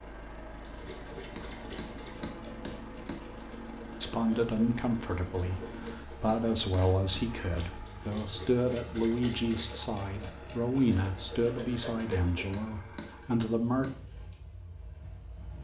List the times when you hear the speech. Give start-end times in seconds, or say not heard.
4.0-13.8.